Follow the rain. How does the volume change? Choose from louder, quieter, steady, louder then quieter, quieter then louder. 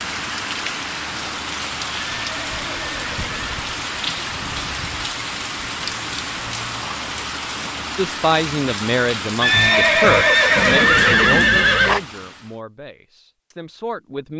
steady.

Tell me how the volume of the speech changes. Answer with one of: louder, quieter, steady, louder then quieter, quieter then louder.
quieter.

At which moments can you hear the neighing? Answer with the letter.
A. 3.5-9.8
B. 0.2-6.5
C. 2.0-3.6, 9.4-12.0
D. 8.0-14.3
C.